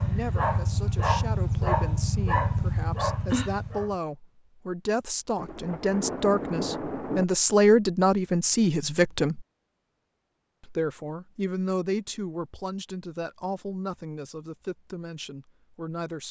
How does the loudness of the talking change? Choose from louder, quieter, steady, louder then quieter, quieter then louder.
louder then quieter.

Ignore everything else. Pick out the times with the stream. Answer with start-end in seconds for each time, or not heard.
not heard.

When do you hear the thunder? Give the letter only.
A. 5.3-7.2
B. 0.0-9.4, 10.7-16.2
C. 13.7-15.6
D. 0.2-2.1
A.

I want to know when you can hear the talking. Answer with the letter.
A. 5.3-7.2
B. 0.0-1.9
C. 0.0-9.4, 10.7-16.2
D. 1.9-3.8
C.